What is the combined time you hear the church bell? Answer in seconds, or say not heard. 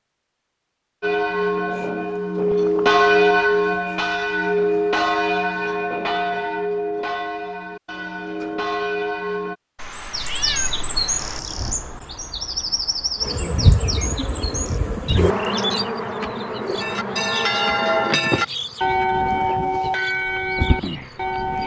13 s.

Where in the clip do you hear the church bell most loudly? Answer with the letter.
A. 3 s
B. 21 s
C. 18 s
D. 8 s
A.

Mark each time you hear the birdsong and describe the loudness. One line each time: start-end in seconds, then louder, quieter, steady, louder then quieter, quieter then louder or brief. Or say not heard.
9.9-21.6 quieter.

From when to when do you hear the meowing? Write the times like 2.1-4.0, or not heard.
9.8-11.4.